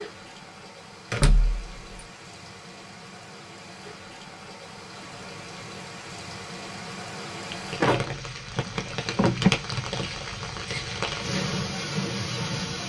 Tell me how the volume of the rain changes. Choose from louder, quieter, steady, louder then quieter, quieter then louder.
louder.